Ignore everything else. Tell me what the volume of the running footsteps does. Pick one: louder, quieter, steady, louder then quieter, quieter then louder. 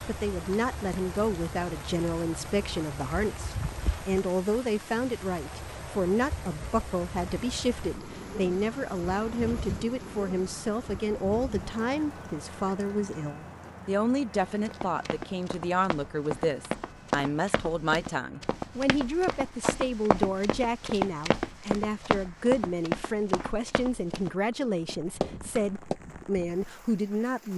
louder then quieter.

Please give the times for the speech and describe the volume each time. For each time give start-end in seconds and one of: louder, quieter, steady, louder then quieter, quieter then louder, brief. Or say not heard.
0.1-27.5 steady.